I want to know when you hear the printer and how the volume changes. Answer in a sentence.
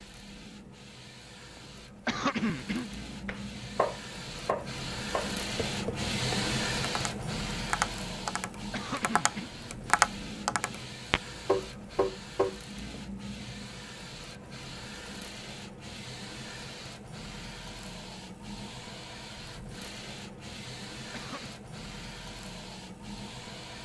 You can hear the printer from 0.0 to 23.8 s, getting louder then quieter.